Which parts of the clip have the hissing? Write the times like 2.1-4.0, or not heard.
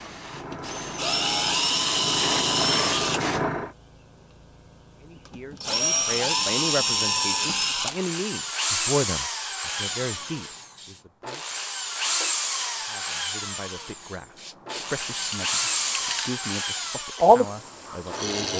0.0-3.8, 9.8-18.3.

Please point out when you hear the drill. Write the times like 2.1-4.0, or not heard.
0.5-3.2, 5.2-18.5.